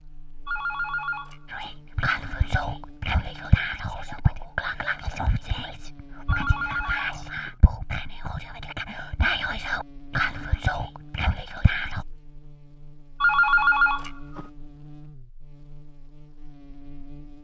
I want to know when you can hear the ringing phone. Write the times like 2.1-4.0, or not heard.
0.5-1.7, 6.2-7.5, 13.2-14.4.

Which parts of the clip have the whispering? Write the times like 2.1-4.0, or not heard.
1.5-12.1.